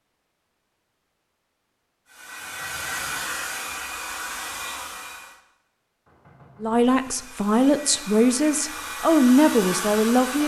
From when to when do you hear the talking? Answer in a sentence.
You can hear the talking from 6.6 to 10.4 s.